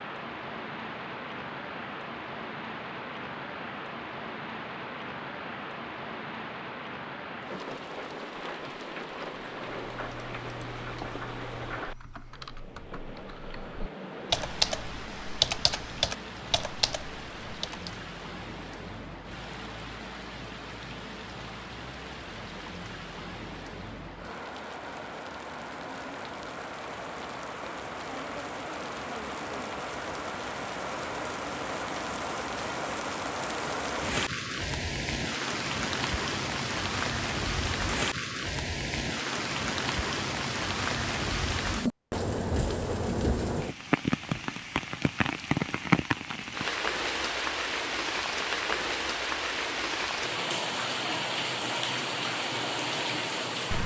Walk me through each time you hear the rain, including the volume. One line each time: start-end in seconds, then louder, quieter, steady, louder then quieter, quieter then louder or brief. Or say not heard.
0.0-53.8 louder.